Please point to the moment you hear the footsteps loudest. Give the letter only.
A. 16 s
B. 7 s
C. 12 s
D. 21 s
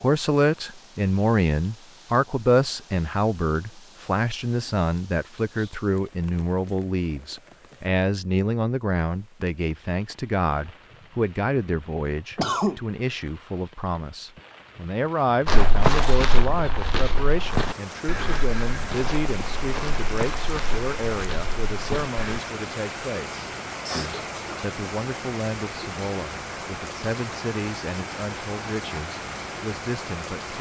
A.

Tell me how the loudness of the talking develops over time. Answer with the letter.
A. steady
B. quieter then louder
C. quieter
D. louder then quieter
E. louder
C.